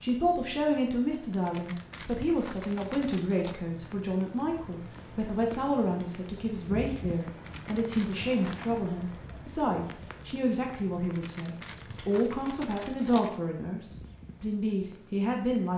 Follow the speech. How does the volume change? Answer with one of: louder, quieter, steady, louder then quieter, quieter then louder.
steady.